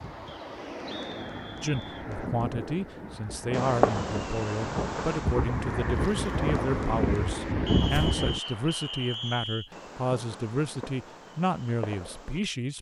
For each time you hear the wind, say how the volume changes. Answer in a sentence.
You can hear the wind from 0.0 to 8.4 s, getting louder.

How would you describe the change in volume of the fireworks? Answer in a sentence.
The volume of the fireworks goes down.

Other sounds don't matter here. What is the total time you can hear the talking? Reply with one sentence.
You can hear the talking for 11 seconds altogether.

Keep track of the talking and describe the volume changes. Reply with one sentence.
The loudness of the talking stays about the same.